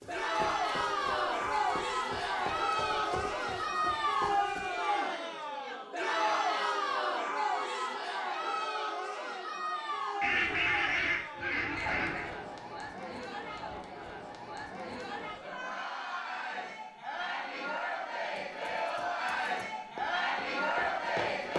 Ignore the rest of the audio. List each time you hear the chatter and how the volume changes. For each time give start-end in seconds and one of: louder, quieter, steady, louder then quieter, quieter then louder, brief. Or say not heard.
0.1-21.5 quieter then louder.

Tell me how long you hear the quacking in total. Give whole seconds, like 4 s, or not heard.
2 s.